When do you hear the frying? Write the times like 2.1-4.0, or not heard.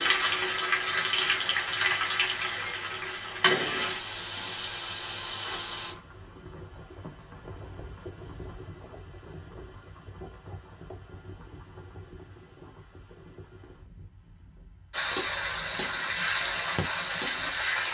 0.0-6.0, 14.9-17.8.